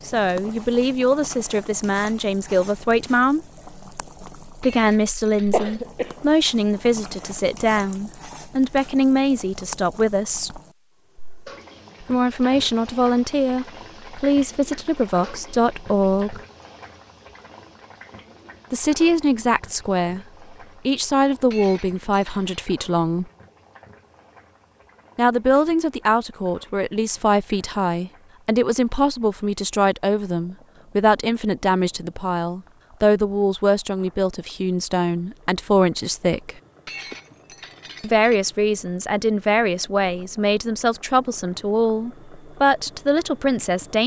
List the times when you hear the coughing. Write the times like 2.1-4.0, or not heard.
5.5-6.2.